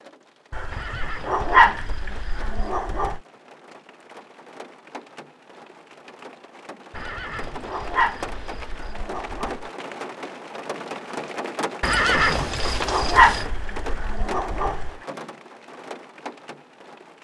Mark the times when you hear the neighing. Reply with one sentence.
The neighing can be heard from 0.7 to 2.7 s, from 7.0 to 8.9 s and from 11.8 to 13.5 s.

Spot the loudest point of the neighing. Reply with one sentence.
The volume of the neighing peaks at 12 seconds.